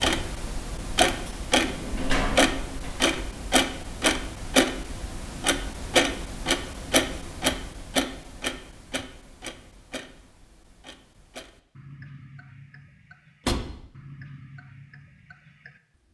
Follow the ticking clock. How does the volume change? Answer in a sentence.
The volume of the ticking clock goes down.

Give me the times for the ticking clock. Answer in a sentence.
You can hear the ticking clock from 0.0 to 16.0 s.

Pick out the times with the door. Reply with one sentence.
The door can be heard from 1.2 to 3.2 s and from 13.4 to 13.8 s.